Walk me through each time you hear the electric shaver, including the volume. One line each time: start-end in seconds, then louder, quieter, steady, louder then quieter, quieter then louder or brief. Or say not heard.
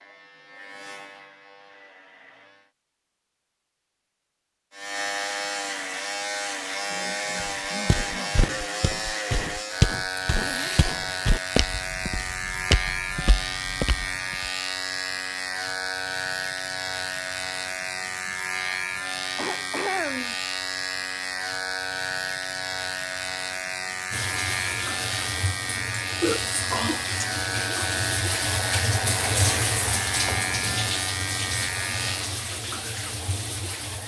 0.0-2.8 brief
4.7-32.4 steady.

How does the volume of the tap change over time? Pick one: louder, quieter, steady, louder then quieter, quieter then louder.
louder then quieter.